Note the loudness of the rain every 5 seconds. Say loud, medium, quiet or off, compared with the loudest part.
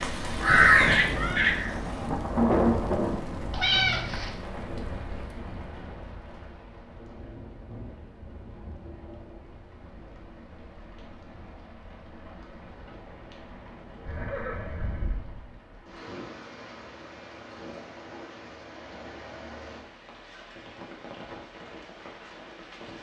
loud, quiet, quiet, quiet, quiet.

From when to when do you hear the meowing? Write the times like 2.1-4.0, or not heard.
3.5-4.4.